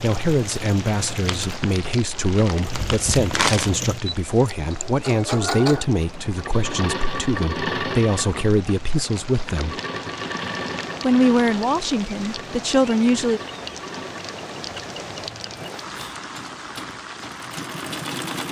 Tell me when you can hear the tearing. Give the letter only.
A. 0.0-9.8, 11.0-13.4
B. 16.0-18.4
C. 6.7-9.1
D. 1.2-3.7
D.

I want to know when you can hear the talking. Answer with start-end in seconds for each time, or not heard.
0.0-9.8, 11.0-13.4.